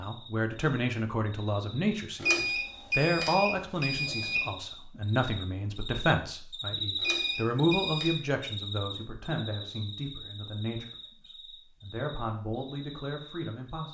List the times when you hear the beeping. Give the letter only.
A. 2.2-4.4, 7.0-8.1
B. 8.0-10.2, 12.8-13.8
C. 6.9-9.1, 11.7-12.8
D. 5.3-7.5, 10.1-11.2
A.